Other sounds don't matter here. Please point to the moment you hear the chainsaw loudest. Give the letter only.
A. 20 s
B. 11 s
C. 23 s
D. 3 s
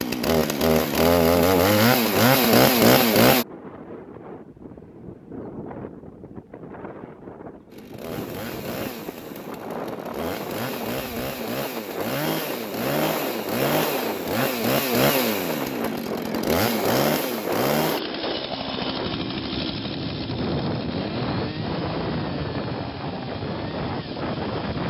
D.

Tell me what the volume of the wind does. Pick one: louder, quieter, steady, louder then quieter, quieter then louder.
louder.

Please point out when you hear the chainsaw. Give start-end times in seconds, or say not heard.
0.0-3.5, 7.7-24.8.